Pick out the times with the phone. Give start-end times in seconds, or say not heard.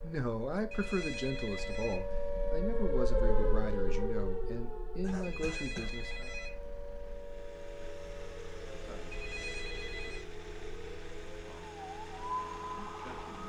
0.7-2.6, 5.2-7.3, 9.1-10.2.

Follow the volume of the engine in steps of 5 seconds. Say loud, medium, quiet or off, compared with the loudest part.
off, loud, loud.